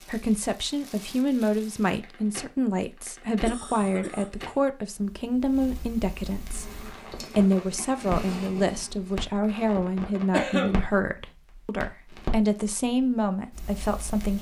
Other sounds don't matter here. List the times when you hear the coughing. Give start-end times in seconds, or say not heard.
3.5-4.5, 10.3-10.8.